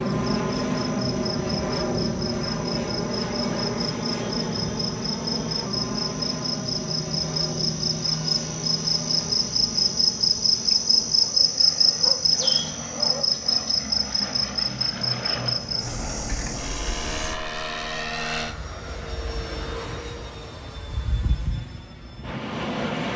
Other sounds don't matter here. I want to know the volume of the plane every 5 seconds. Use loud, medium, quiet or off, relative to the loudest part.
loud, medium, medium, medium, medium.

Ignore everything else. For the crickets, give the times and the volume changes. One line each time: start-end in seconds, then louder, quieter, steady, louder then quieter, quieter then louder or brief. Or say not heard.
0.0-17.4 louder then quieter.